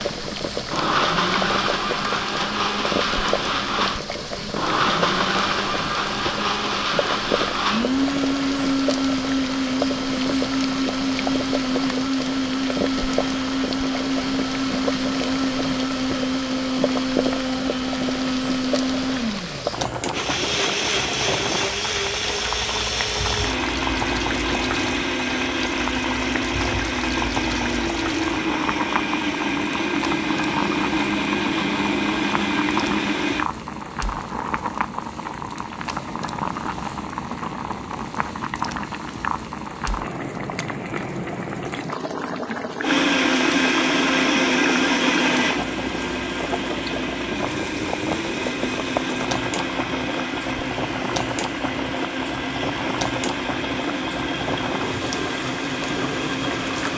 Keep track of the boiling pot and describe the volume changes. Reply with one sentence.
The volume of the boiling pot stays about the same.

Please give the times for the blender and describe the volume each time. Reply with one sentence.
You can hear the blender from 0.0 to 33.5 s, at a steady volume; and from 42.8 to 56.9 s, getting quieter.